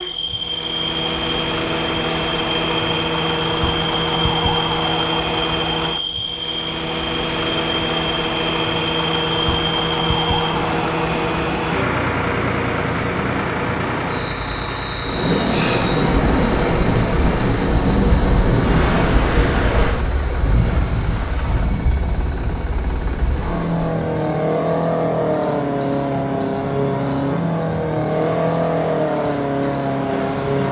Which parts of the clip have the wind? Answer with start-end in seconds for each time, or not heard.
15.0-30.6.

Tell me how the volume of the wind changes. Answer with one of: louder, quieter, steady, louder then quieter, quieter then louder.
quieter.